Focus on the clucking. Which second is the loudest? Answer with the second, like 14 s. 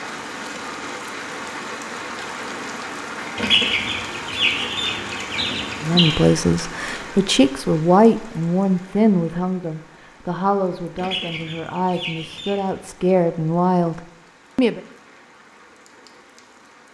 4 s.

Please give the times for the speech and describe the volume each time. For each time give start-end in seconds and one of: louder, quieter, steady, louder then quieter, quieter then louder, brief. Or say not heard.
5.8-14.8 quieter then louder.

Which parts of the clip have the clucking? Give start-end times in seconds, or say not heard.
3.4-6.2, 10.9-12.6.